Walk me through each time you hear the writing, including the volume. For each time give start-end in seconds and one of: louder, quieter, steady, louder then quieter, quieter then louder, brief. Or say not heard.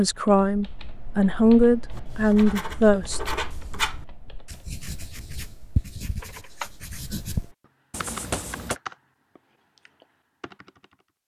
1.9-8.8 quieter then louder.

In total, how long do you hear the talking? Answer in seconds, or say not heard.
3 s.